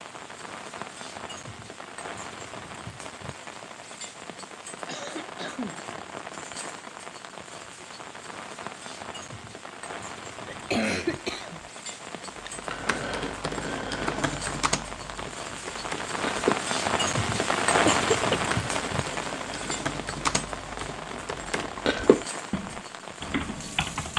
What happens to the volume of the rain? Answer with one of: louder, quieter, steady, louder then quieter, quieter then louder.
louder then quieter.